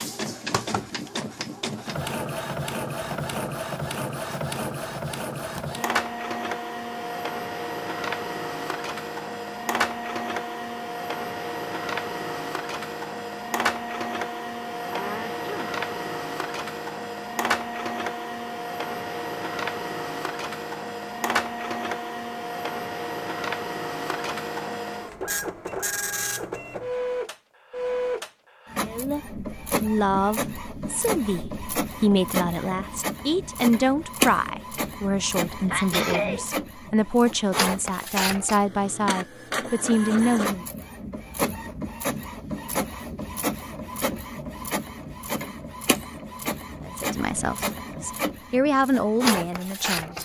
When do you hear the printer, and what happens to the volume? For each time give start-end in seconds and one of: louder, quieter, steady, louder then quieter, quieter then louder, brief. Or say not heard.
0.0-50.2 steady.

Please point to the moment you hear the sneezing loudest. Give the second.
36 s.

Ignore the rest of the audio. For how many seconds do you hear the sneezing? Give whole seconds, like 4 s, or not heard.
2 s.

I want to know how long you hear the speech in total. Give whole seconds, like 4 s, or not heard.
15 s.